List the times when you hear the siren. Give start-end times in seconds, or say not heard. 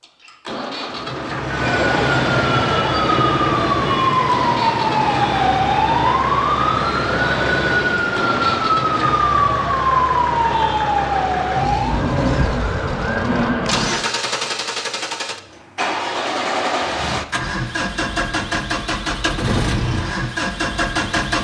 1.4-14.1.